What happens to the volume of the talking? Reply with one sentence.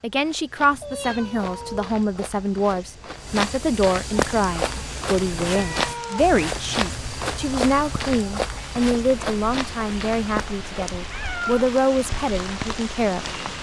The volume of the talking stays about the same.